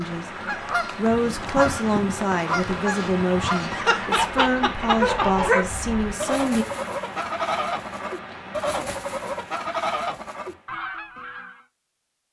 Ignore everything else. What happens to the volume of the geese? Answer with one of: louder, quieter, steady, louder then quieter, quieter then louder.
steady.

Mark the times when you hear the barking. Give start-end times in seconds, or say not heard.
3.7-5.7.